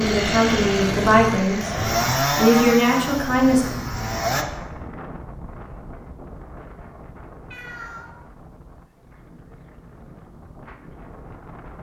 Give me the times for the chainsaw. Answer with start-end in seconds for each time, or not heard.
0.0-4.5.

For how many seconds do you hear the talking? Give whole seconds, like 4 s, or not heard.
4 s.